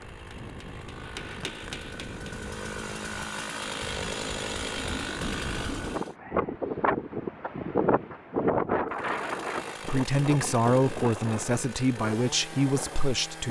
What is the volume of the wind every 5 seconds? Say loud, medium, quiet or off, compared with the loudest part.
quiet, loud, medium.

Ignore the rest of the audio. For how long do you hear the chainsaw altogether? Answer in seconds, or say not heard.
11 s.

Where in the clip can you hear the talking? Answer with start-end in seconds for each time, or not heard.
9.8-13.4.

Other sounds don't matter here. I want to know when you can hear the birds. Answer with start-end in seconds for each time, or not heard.
not heard.